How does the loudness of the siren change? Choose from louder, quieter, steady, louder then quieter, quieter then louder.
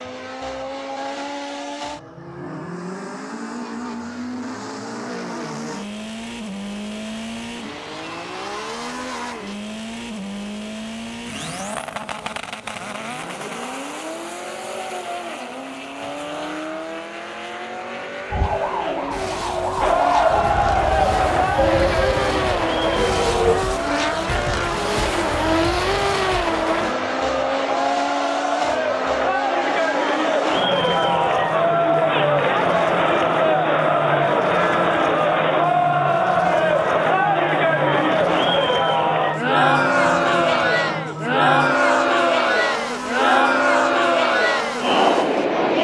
louder then quieter.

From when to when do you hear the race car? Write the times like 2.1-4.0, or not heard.
0.0-45.7.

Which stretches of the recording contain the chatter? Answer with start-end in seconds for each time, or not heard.
19.8-45.8.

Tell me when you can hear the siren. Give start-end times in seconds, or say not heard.
18.3-23.6.